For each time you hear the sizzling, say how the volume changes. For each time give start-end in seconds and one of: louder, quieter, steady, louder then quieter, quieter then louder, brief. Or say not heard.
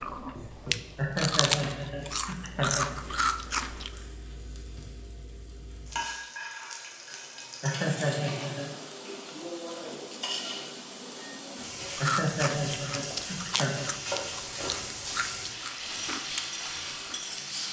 0.0-17.6 louder.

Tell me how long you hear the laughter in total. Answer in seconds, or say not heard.
5 s.